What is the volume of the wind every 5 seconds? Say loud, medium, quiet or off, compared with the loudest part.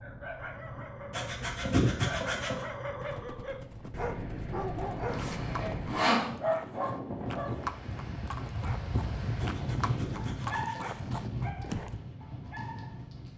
medium, loud, loud.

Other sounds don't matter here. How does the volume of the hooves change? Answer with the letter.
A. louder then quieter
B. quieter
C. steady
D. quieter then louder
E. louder
E.